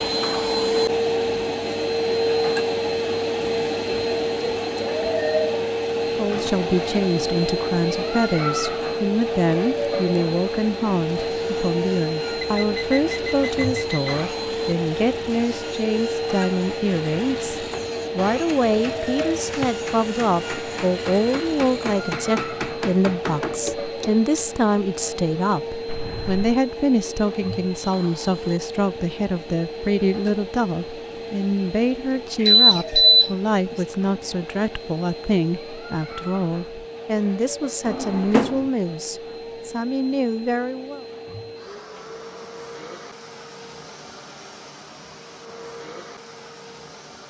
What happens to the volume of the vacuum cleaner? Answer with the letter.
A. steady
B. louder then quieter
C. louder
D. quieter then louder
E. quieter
E.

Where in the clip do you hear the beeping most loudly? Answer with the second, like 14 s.
33 s.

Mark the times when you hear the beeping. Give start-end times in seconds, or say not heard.
12.4-14.2, 25.9-26.6, 32.4-33.3.